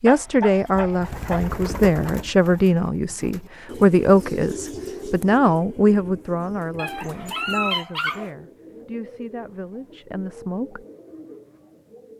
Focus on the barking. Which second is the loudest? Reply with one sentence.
The volume of the barking peaks at 8 seconds.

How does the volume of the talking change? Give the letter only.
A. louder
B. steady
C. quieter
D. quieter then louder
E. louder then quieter
C.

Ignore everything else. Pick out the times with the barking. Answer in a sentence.
You can hear the barking from 0.1 to 1.6 s and from 6.8 to 8.3 s.